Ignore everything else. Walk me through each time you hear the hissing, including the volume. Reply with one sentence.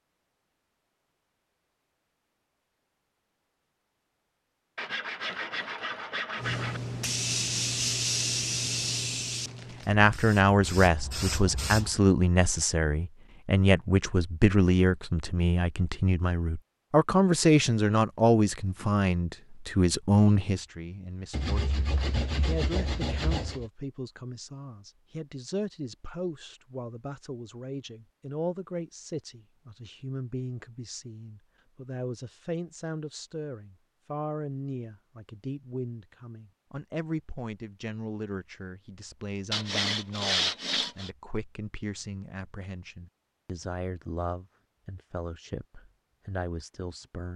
You can hear the hissing from 6.3 to 11.9 s, getting quieter then louder.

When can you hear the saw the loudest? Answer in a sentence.
The volume of the saw peaks at 40 seconds.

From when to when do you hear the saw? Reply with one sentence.
The saw can be heard from 4.8 to 6.8 s, from 21.3 to 23.6 s and from 39.5 to 41.1 s.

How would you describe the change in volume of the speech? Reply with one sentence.
The volume of the speech goes down.